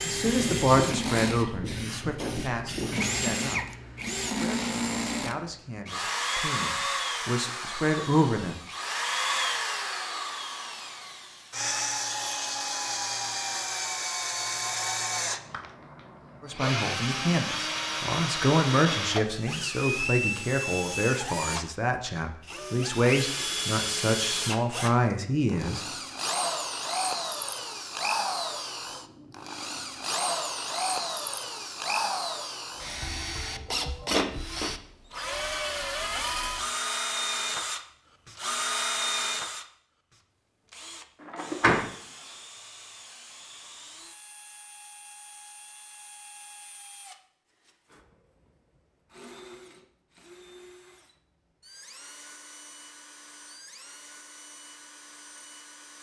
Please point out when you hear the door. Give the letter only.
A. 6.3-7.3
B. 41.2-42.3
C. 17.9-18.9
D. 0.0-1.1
B.